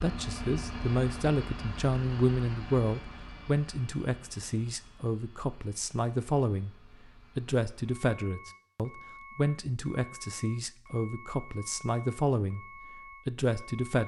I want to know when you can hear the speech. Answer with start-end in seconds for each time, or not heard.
0.0-6.8, 7.3-12.7, 13.2-14.0.